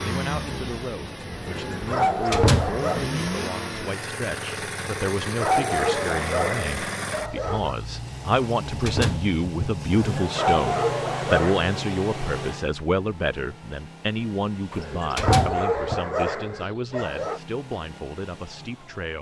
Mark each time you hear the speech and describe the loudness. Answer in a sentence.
You can hear the speech from 0.0 to 19.1 s, getting louder then quieter.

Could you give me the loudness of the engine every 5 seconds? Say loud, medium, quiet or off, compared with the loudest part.
loud, loud, loud, quiet.